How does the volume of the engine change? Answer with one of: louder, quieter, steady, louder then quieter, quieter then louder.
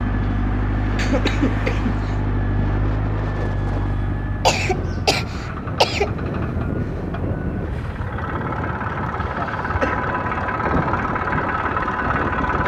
quieter then louder.